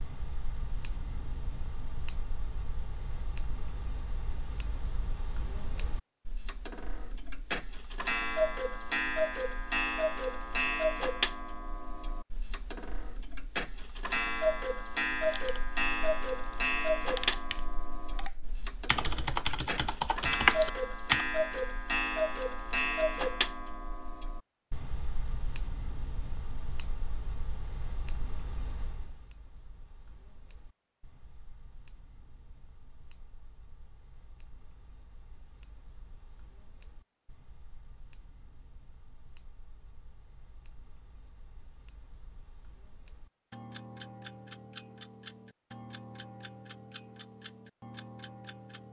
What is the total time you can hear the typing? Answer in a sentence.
The typing can be heard for 6 seconds in total.